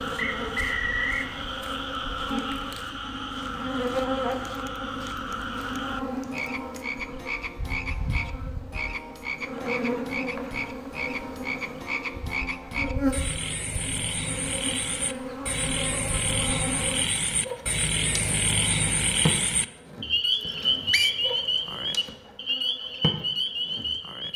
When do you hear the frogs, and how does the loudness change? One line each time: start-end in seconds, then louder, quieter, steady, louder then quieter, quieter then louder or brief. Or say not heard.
0.0-24.3 louder.